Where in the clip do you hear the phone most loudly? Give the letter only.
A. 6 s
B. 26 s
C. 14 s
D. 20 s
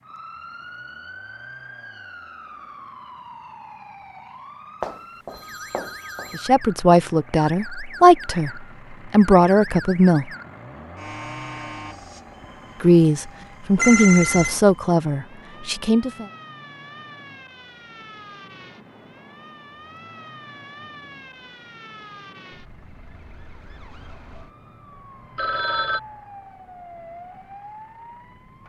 C.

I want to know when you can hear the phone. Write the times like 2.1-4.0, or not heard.
4.8-6.5, 13.8-14.6, 25.4-26.0.